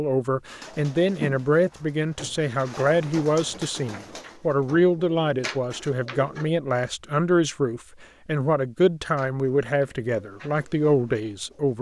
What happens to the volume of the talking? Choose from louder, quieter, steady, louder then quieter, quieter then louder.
steady.